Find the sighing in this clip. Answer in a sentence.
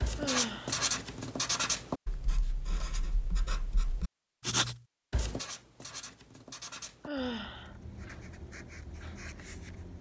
The sighing can be heard from 0.1 to 0.8 s and from 7.0 to 7.8 s.